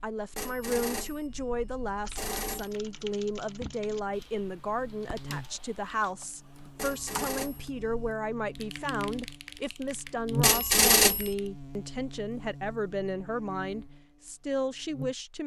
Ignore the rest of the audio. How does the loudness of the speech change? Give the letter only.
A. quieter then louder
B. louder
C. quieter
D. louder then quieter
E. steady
E.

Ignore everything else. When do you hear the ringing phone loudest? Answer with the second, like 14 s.
11 s.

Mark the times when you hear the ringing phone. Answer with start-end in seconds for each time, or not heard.
0.3-2.8, 6.8-8.1, 10.4-11.3.